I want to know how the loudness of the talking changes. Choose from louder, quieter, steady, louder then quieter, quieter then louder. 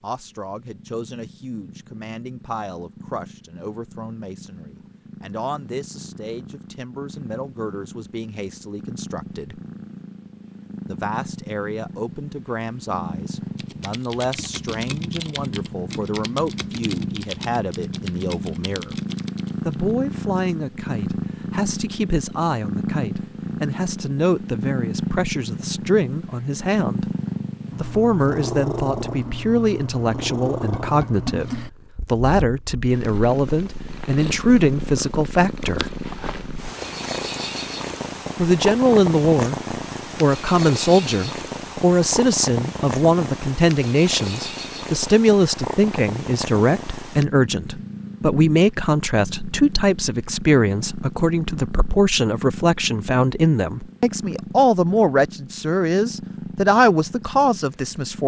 louder.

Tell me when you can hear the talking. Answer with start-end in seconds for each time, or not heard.
0.0-9.6, 10.8-18.9, 19.6-27.1, 27.8-35.9, 38.4-58.2.